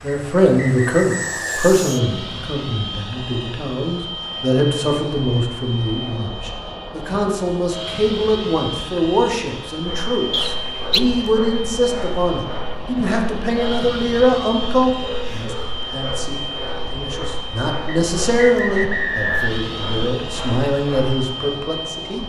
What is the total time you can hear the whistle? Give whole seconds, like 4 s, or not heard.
4 s.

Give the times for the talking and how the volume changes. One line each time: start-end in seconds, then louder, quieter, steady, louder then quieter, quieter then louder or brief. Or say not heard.
0.0-22.2 steady.